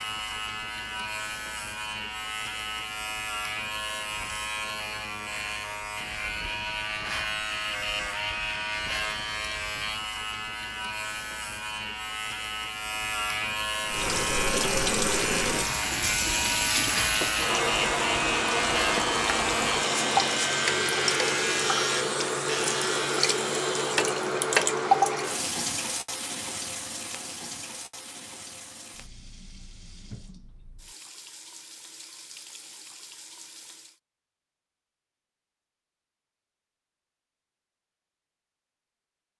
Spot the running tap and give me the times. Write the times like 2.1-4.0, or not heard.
13.8-34.0.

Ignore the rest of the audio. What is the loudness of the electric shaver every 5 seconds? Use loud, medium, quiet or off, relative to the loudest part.
medium, loud, loud, loud, loud, off, off, off.